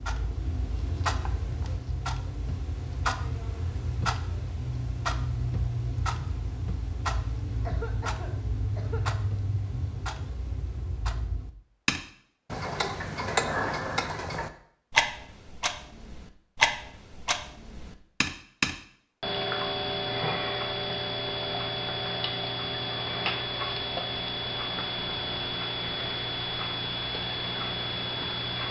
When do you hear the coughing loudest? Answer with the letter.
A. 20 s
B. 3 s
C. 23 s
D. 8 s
D.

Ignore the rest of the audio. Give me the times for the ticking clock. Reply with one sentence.
You can hear the ticking clock from 0.0 to 28.6 s.